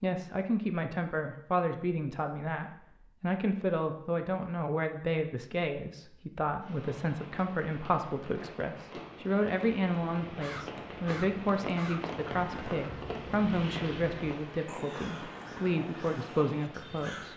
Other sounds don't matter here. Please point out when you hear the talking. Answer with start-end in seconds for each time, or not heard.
0.0-17.3.